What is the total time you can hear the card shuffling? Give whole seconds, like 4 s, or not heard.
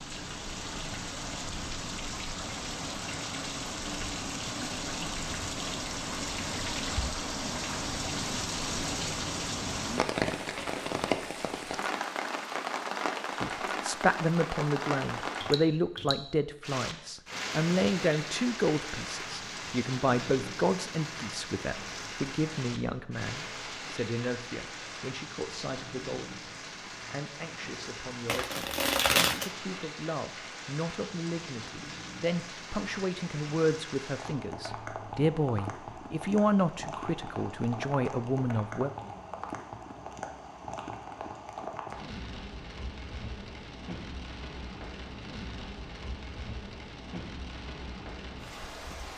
2 s.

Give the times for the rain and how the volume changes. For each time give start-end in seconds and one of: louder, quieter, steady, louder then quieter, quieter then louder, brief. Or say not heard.
0.0-49.1 quieter.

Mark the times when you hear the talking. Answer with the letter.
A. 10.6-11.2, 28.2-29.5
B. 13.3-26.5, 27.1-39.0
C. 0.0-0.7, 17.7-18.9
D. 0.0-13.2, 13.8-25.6
B.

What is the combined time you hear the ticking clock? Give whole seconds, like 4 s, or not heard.
not heard.